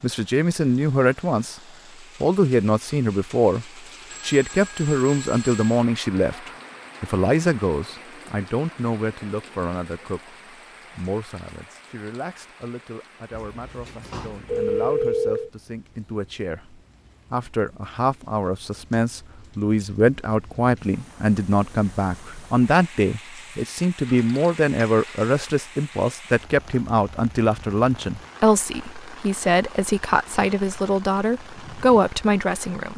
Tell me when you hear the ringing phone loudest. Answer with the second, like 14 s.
15 s.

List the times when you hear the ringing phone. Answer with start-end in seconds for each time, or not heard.
4.1-5.8, 13.3-15.5, 24.0-25.4.